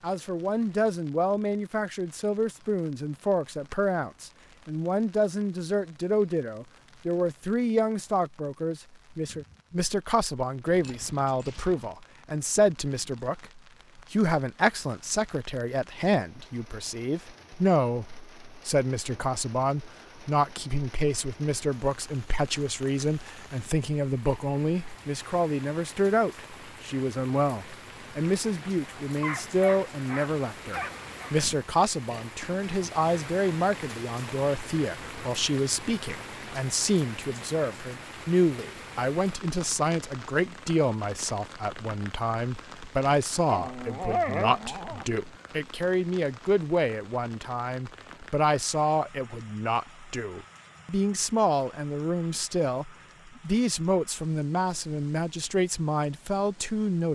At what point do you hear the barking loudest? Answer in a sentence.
The loudest moment of the barking is at 44 seconds.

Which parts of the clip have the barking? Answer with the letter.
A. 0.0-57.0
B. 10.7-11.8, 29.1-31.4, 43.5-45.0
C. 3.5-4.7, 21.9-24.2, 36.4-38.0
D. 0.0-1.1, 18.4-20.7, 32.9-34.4
B.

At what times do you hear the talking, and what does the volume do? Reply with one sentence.
You can hear the talking from 0.0 to 57.0 s, at a steady volume.